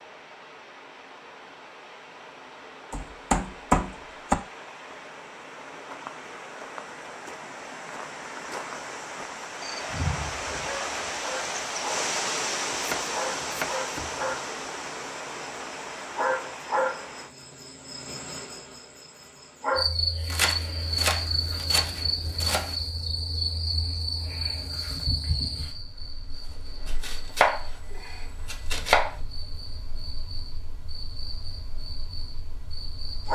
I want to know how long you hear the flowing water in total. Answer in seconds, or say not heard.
17 s.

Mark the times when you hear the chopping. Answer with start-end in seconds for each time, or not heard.
2.9-4.3, 12.7-14.1, 20.3-22.8, 26.9-29.1.